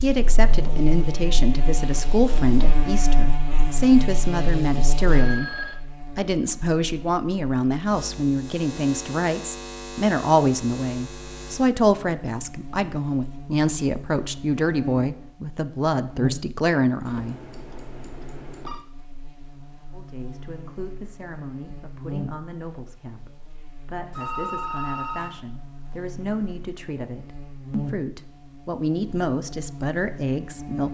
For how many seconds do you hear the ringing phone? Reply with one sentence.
You can hear the ringing phone for 4 seconds altogether.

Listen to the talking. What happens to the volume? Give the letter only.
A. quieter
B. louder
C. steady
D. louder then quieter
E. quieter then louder
E.